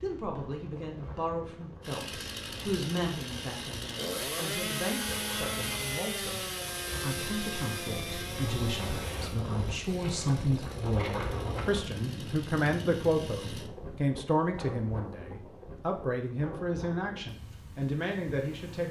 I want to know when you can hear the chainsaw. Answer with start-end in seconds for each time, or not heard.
1.8-13.7.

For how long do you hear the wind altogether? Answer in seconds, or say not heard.
19 s.